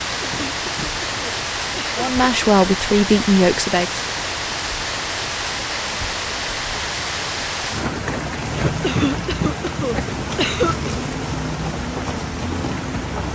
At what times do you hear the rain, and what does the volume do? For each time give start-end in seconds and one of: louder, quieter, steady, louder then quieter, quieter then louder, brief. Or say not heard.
0.0-13.2 steady.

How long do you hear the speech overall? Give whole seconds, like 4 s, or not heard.
2 s.